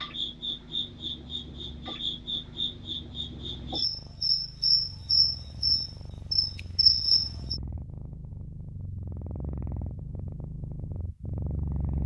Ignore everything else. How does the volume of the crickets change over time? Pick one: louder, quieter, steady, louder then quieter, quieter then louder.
louder.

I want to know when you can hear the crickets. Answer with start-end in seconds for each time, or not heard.
0.0-7.6.